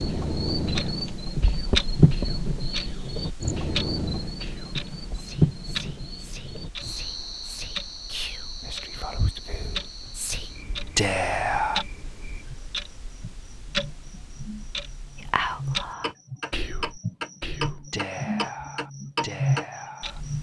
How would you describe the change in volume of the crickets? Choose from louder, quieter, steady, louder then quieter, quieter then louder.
quieter then louder.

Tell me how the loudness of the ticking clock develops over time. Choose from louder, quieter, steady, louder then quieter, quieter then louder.
quieter then louder.